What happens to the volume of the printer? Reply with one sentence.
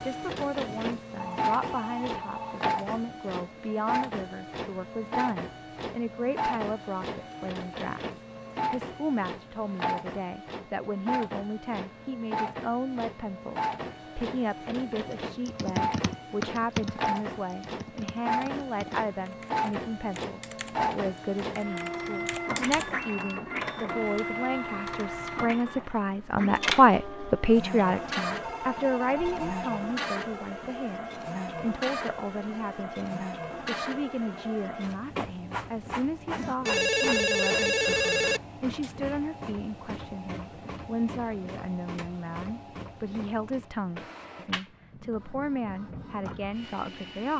The volume of the printer goes down.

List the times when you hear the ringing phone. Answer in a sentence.
The ringing phone can be heard from 1.1 to 2.6 s, from 28.4 to 29.8 s and from 36.4 to 38.4 s.